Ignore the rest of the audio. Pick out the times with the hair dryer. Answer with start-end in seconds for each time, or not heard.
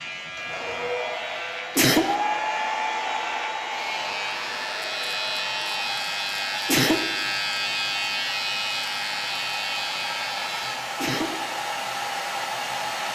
0.0-13.1.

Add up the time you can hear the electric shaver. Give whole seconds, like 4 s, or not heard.
11 s.